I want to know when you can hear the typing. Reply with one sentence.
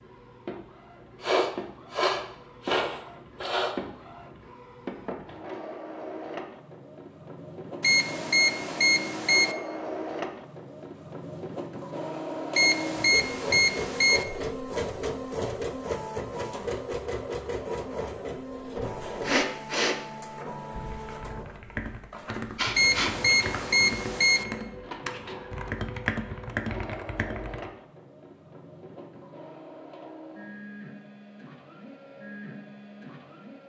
You can hear the typing from 21.0 to 27.7 s.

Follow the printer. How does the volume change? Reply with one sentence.
The volume of the printer goes up, then down.